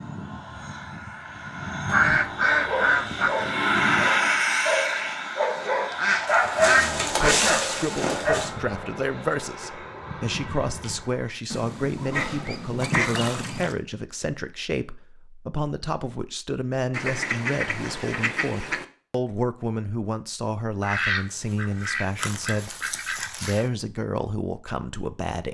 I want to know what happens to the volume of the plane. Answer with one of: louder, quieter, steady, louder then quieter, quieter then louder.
louder then quieter.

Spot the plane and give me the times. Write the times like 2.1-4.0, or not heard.
0.0-11.3.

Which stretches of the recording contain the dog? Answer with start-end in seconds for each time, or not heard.
2.4-8.5.